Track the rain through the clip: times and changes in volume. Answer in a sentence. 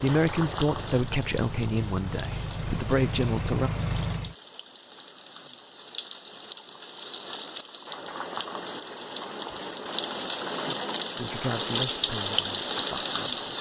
You can hear the rain from 0.0 to 13.5 s, getting quieter then louder.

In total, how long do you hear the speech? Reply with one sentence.
You can hear the speech for 6 seconds altogether.